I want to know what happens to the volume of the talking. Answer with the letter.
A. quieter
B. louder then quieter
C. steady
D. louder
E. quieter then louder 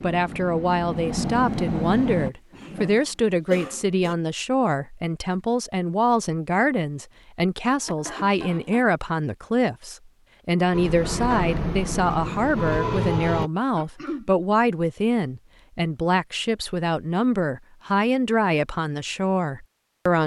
C.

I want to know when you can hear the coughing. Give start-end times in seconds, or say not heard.
2.5-4.2, 7.8-8.8, 13.8-14.3.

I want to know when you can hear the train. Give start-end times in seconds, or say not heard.
0.0-2.3, 10.7-13.5.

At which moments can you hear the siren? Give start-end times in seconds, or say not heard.
not heard.